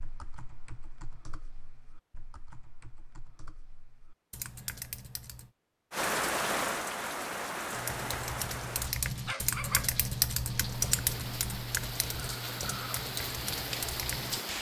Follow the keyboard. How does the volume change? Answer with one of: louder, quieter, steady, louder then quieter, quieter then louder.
louder then quieter.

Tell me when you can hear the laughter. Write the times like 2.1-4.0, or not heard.
not heard.